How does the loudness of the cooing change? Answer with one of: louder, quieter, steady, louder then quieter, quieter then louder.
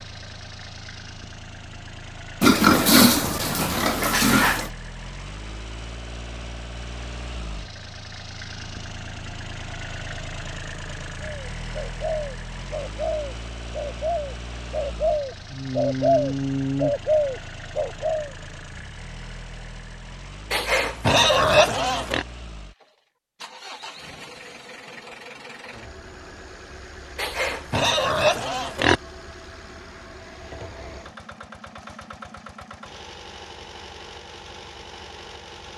louder.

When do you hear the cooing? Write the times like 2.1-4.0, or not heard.
11.2-18.3.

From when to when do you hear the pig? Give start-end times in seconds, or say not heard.
2.4-4.7, 20.5-22.2, 27.1-29.0.